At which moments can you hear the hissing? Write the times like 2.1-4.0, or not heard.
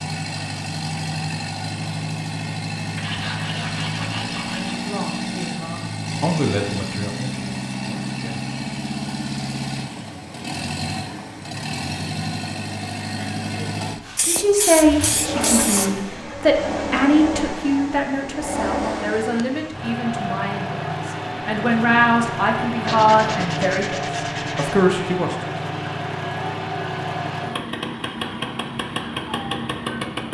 14.1-15.9.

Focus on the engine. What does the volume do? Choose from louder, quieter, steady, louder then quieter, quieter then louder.
steady.